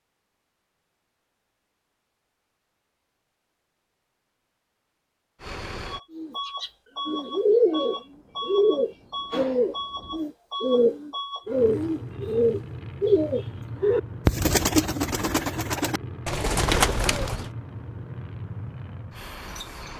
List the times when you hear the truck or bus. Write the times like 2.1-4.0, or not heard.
5.4-19.9.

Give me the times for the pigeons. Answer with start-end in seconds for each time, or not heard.
6.1-17.5.